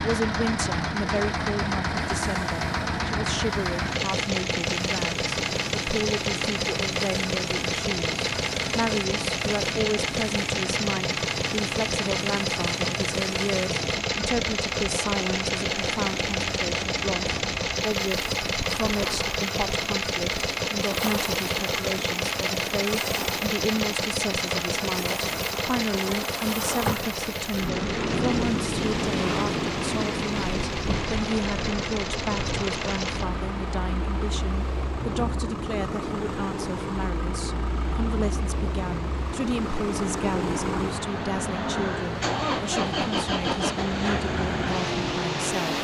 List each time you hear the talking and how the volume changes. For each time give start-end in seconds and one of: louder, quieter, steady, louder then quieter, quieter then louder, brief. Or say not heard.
0.0-45.7 steady.